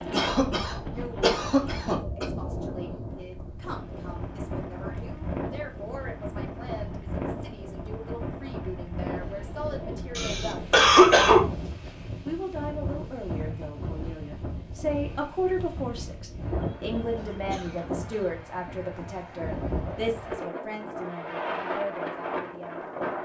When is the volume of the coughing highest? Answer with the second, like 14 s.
11 s.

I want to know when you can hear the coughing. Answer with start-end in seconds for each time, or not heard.
0.1-2.2, 10.2-11.4, 16.6-18.3.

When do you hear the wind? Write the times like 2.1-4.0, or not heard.
0.0-23.2.